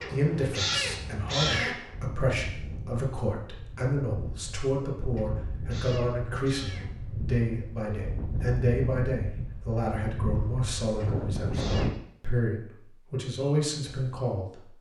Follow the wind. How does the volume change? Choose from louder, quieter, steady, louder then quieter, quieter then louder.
louder.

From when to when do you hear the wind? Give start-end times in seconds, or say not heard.
0.0-11.9.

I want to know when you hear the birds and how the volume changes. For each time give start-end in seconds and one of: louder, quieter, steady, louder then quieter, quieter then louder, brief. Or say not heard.
not heard.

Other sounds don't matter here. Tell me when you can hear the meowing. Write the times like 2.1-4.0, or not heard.
0.0-1.7, 5.2-6.9, 11.0-12.0.